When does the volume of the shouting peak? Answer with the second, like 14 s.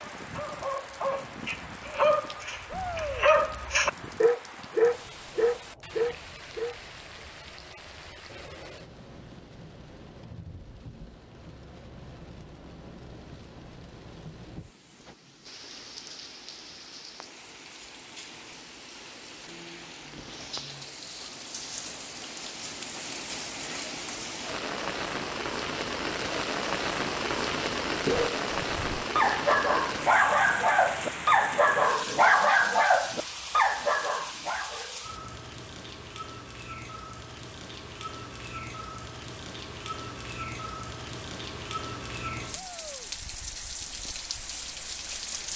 3 s.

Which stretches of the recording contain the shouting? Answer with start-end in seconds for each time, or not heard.
2.6-3.3, 42.5-43.1.